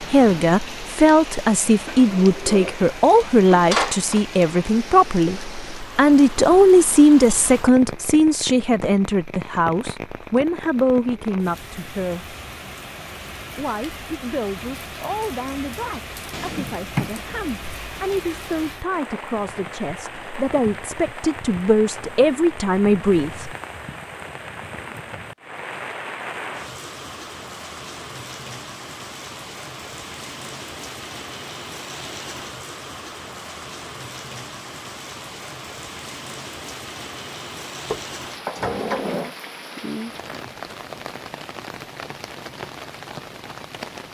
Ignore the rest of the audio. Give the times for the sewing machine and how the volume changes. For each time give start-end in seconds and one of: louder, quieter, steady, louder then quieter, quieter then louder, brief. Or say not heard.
not heard.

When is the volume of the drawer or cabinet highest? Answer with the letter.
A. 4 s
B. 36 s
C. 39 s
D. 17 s
A.